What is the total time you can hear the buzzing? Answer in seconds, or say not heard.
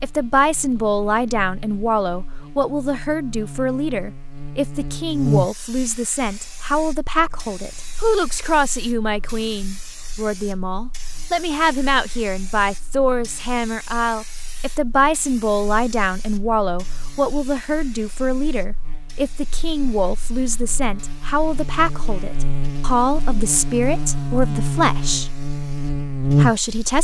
27 s.